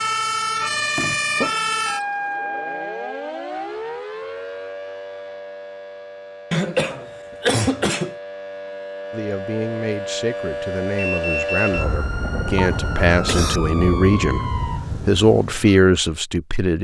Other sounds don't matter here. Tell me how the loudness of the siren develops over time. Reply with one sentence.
The loudness of the siren goes down, then up.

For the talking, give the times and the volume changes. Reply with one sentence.
You can hear the talking from 9.1 to 16.8 s, getting louder.